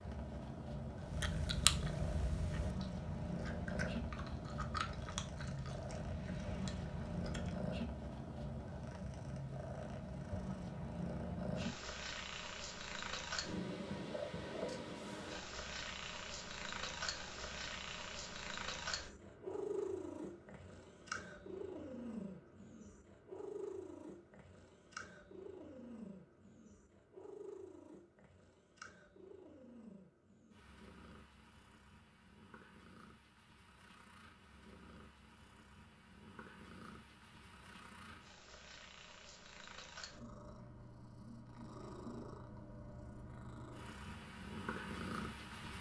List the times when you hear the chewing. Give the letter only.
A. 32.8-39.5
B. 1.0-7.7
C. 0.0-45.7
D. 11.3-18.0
B.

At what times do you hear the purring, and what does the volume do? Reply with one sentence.
You can hear the purring from 0.0 to 45.7 s, getting quieter then louder.